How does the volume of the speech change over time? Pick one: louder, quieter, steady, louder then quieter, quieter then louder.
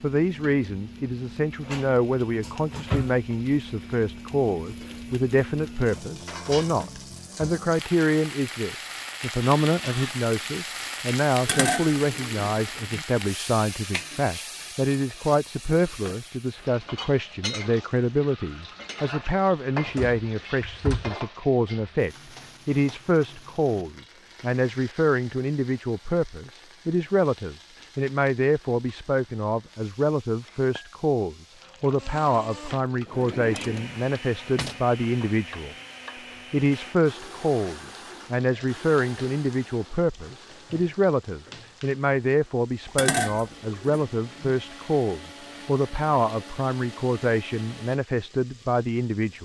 steady.